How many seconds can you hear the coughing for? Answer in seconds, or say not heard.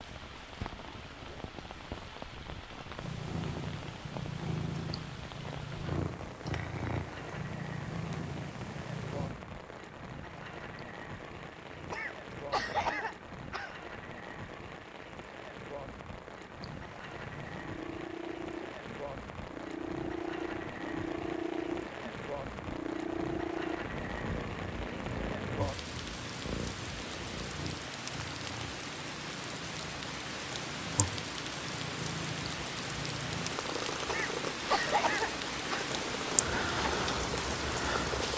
4 s.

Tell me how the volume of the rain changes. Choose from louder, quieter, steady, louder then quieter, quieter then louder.
louder.